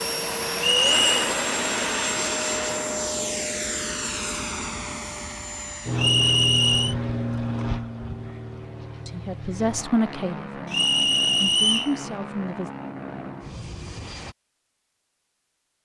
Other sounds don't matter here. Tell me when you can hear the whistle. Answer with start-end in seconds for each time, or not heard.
0.6-1.3, 6.0-7.0, 10.7-11.9.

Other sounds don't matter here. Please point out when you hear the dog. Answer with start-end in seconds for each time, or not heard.
not heard.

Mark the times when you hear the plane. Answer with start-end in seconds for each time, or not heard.
0.0-14.3.